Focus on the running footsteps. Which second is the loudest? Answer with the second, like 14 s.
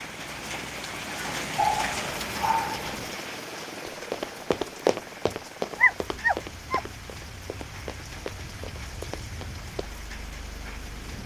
5 s.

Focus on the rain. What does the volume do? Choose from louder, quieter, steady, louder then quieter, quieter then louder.
quieter.